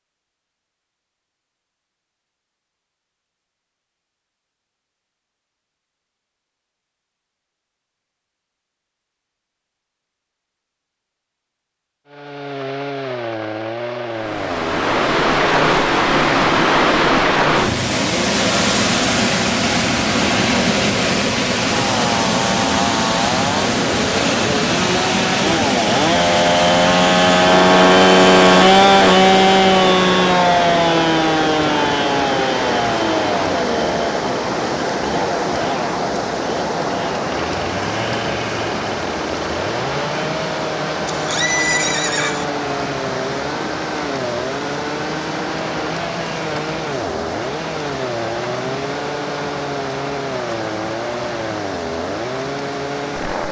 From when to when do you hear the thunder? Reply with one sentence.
You can't hear the thunder here.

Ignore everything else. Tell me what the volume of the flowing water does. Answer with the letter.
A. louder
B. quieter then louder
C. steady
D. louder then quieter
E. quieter
E.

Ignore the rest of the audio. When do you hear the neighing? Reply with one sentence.
The neighing can be heard from 41.0 to 42.5 s.